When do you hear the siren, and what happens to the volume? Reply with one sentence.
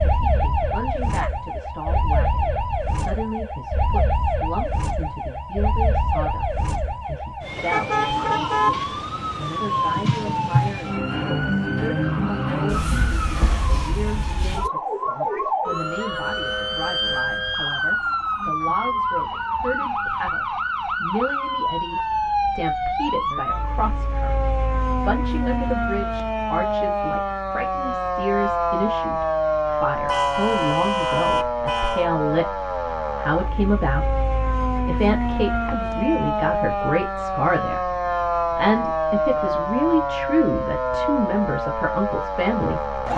You can hear the siren from 0.0 to 43.1 s, at a steady volume.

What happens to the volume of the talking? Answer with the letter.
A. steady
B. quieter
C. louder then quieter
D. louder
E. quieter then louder
D.